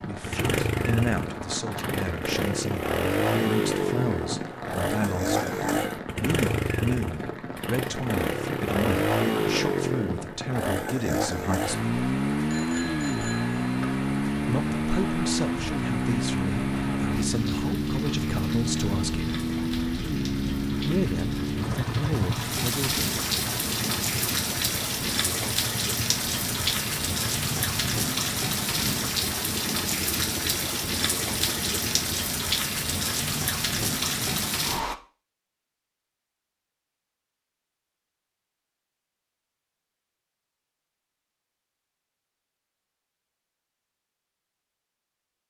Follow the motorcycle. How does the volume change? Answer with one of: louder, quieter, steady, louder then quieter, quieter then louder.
quieter.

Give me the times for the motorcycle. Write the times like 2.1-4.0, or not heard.
0.1-32.2.